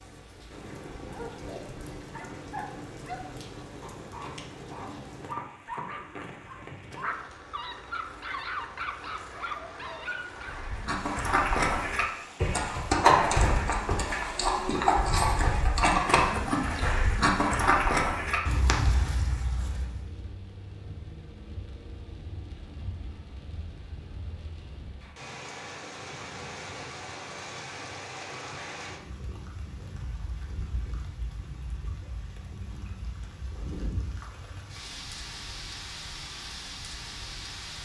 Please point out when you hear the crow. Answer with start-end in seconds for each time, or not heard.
not heard.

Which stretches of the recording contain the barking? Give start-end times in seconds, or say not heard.
1.0-10.6.